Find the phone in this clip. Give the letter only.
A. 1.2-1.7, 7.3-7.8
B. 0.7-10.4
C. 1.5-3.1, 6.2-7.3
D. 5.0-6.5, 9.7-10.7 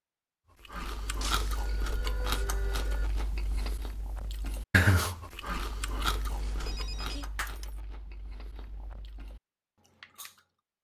C.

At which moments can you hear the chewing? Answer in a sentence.
The chewing can be heard from 0.7 to 10.4 s.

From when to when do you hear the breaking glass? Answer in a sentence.
You can hear the breaking glass from 1.2 to 1.7 s and from 7.3 to 7.8 s.